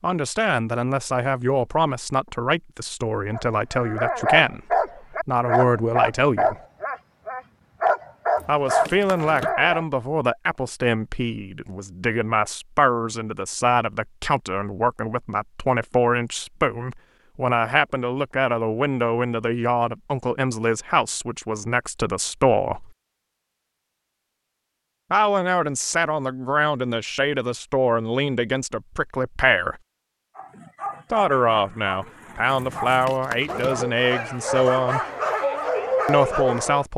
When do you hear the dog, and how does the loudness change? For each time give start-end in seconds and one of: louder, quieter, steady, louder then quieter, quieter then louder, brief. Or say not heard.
3.3-9.8 steady
30.4-36.9 louder.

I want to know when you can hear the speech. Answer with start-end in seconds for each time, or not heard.
0.0-6.5, 8.4-22.9, 25.1-29.8, 31.1-35.0, 36.0-36.9.